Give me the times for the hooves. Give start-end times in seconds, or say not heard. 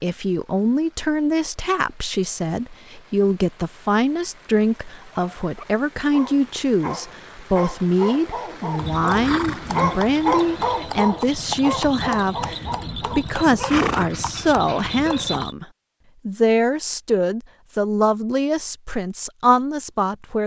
8.8-15.6.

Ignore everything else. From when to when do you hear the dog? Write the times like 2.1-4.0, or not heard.
5.0-15.4.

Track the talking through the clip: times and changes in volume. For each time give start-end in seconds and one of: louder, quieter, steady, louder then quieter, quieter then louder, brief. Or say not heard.
0.0-15.7 steady
16.2-20.4 quieter then louder.